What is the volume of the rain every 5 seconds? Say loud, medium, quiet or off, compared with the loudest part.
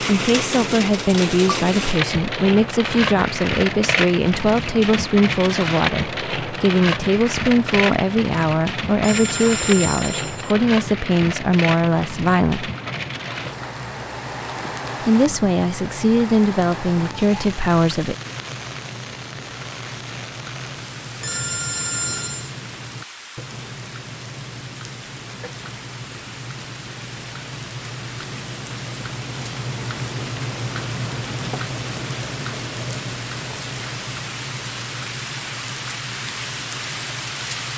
loud, loud, medium, medium, quiet, quiet, medium, medium.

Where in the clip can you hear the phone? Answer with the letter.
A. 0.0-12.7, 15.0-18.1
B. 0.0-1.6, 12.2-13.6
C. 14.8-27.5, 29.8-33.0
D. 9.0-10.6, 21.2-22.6
D.